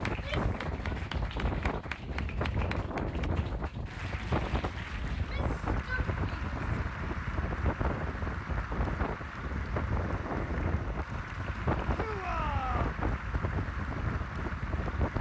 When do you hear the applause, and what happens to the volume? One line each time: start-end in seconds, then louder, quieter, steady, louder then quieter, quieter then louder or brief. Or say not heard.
0.0-15.1 steady.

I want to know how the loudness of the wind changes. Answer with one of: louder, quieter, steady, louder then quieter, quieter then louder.
steady.